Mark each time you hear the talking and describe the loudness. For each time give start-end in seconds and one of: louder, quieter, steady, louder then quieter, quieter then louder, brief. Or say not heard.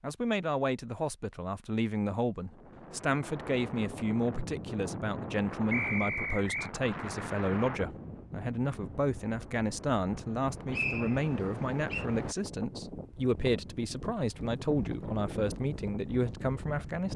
0.0-17.1 steady.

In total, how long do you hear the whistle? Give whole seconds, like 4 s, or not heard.
2 s.